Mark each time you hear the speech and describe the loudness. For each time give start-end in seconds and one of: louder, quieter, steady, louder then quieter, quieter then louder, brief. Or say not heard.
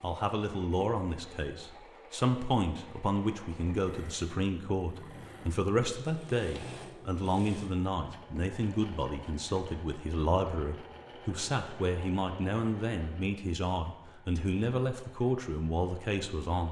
0.0-16.6 steady.